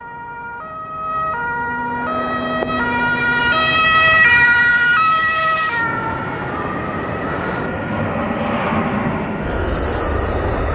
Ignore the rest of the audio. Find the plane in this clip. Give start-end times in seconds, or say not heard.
1.9-10.7.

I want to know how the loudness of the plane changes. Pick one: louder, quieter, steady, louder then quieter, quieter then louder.
louder.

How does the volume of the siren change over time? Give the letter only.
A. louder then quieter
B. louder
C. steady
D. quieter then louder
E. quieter
A.